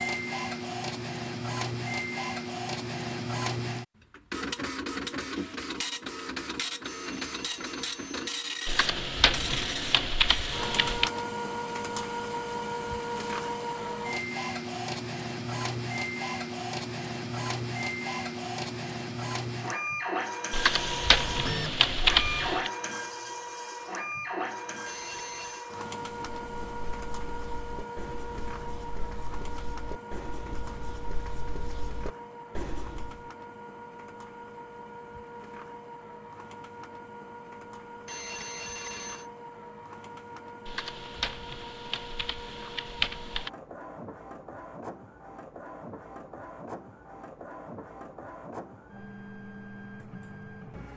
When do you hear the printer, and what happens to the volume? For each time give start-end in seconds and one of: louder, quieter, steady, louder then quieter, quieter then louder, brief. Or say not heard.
0.0-50.9 quieter.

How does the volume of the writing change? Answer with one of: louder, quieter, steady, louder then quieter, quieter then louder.
louder.